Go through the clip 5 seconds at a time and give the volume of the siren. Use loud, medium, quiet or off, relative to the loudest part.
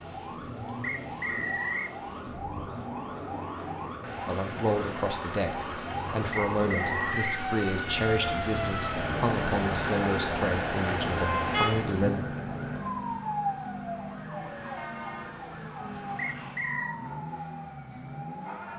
medium, loud, loud, medium.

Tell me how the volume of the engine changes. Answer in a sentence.
The volume of the engine goes up, then down.